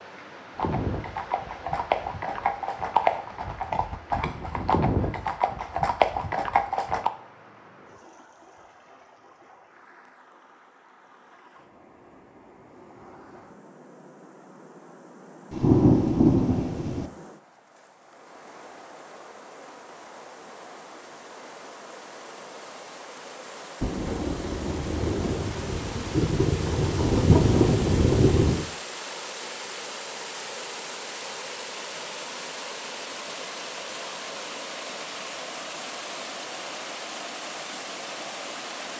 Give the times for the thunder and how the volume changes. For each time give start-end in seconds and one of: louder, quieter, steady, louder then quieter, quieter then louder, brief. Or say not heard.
15.5-17.1 brief
23.8-28.6 louder.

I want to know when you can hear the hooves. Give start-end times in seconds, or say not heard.
0.6-7.1.